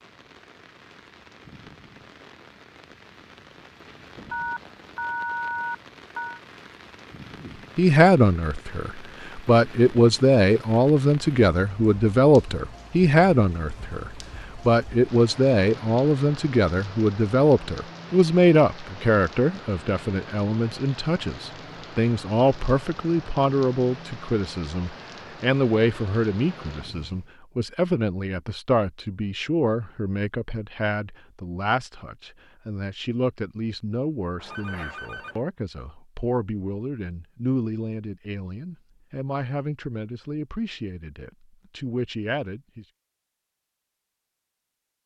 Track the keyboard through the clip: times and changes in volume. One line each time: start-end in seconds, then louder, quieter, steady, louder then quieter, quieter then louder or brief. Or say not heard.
not heard.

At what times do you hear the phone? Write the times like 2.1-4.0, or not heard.
4.3-6.4, 34.4-35.5.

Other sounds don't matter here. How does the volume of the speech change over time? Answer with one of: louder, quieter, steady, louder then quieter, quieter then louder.
quieter.